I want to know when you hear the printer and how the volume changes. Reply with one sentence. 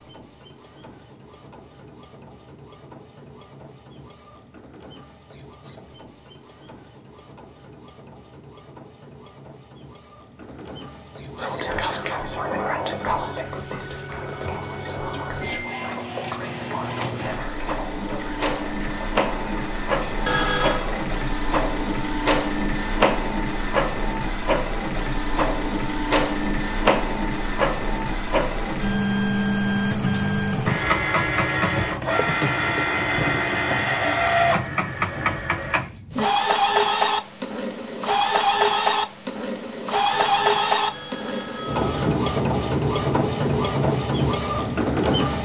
You can hear the printer from 0.0 to 45.4 s, getting louder.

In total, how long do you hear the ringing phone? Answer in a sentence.
The ringing phone can be heard for 3 seconds in total.